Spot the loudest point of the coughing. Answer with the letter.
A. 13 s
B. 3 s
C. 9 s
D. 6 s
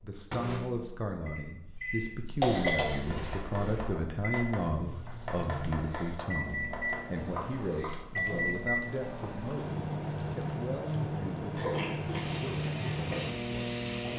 B.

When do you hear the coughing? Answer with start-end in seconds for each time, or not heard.
2.4-3.9, 11.6-12.4.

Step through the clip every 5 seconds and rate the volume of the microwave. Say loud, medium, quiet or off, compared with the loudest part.
medium, loud, loud.